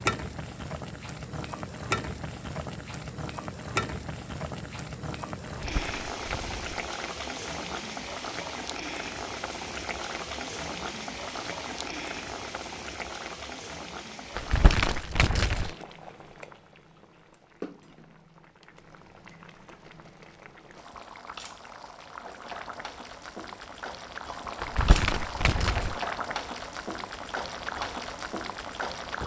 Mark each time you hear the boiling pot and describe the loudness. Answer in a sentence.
You can hear the boiling pot from 0.0 to 29.2 s, getting quieter then louder.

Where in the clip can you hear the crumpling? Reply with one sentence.
You can hear the crumpling from 5.5 to 6.8 s, from 14.3 to 15.7 s and from 24.6 to 25.9 s.